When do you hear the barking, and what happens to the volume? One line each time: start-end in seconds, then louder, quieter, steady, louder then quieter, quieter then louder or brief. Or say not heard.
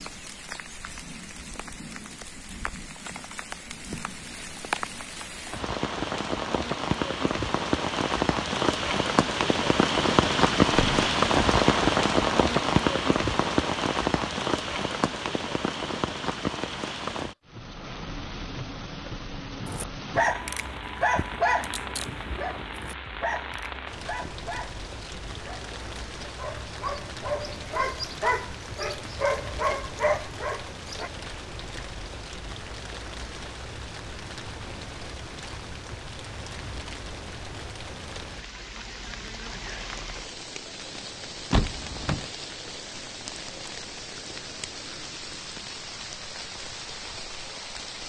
19.6-31.1 quieter then louder.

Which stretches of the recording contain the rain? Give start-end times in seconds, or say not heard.
0.0-48.0.